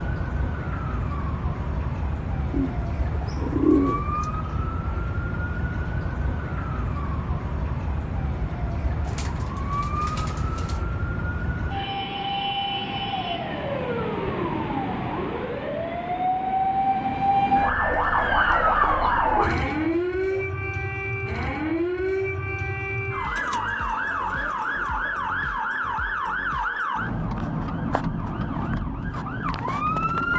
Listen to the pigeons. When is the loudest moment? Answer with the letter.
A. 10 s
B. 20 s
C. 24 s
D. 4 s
D.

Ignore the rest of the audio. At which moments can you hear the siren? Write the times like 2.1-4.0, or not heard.
0.0-30.3.